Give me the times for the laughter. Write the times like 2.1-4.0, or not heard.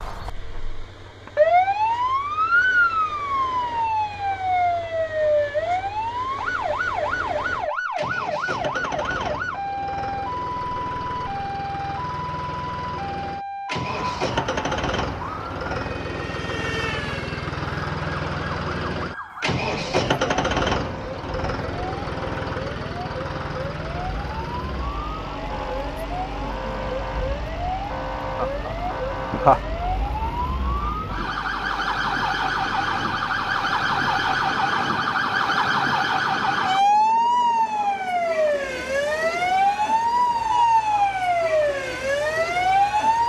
28.4-29.6.